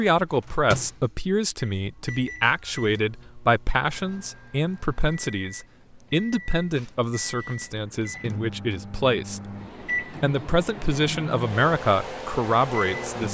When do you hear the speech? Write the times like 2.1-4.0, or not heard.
0.0-9.4, 10.0-13.2.